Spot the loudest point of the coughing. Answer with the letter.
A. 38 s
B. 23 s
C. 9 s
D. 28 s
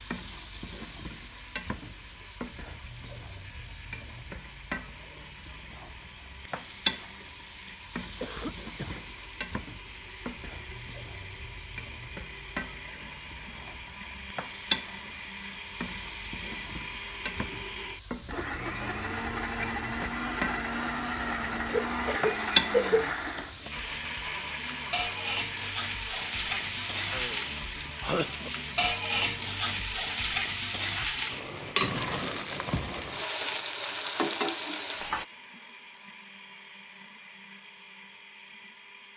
B.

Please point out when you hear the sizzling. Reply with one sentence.
You can hear the sizzling from 0.0 to 35.2 s.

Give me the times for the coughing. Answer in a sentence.
The coughing can be heard from 8.2 to 9.1 s, from 21.6 to 23.1 s and from 27.1 to 28.5 s.